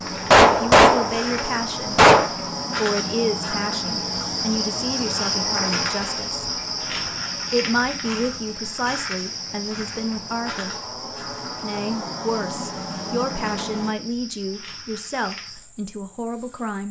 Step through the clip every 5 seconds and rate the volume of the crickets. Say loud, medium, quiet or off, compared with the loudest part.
loud, loud, medium, quiet.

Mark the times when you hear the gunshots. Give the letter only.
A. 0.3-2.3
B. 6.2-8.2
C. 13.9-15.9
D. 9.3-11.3
A.